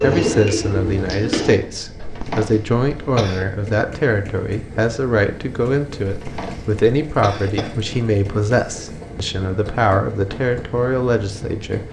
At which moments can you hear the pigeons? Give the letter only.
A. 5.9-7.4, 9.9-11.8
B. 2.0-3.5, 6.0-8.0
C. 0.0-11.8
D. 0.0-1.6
D.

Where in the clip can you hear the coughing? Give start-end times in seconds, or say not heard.
2.0-3.5, 6.0-8.0.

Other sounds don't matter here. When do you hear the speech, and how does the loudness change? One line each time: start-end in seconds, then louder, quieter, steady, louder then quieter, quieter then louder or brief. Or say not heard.
0.0-11.8 steady.